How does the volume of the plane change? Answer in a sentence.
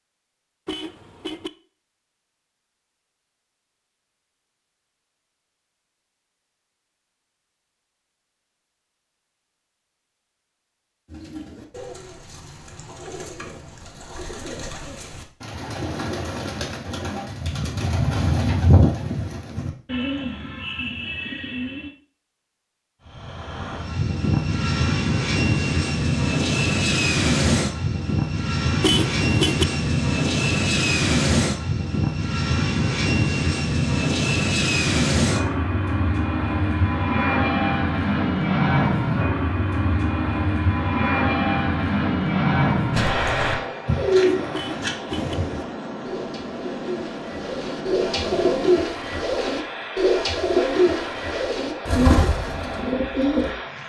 The volume of the plane goes down.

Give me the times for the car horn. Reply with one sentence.
You can hear the car horn from 0.7 to 1.5 s, from 28.8 to 29.6 s and from 44.5 to 45.4 s.